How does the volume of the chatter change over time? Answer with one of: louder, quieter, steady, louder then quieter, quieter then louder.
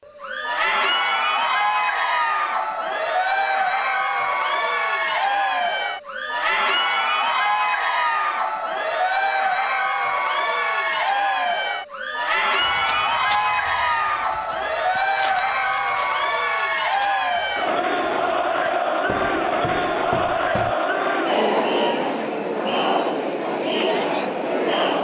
steady.